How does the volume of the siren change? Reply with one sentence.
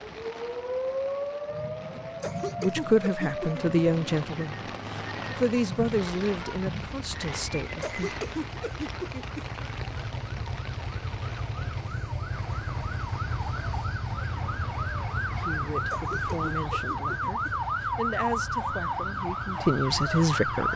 The volume of the siren goes down, then up.